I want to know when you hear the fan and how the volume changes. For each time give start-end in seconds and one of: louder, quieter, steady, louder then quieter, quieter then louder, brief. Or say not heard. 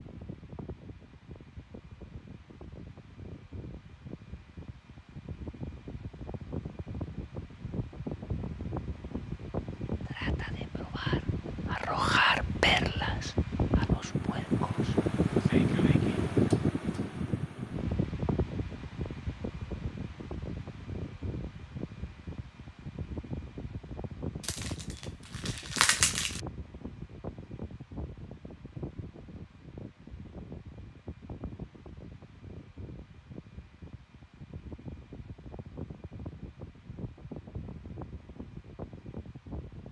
0.0-39.8 louder then quieter.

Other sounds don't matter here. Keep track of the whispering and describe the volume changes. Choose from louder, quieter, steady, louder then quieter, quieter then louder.
louder then quieter.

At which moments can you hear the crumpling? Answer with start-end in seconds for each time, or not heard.
24.4-26.4.